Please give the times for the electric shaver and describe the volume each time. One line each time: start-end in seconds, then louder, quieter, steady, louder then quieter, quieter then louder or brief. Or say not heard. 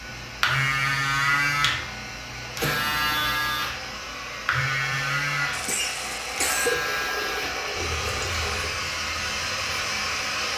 0.0-10.5 quieter.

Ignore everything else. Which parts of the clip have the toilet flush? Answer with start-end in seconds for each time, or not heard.
6.7-8.7.